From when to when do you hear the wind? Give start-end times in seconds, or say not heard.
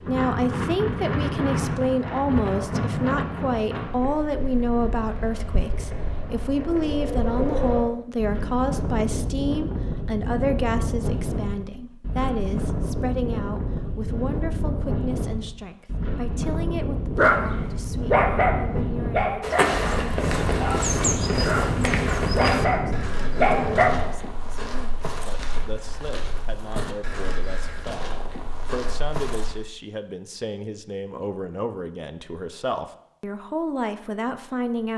0.0-24.1.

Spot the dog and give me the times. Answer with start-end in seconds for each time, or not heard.
17.1-19.8, 20.6-24.1.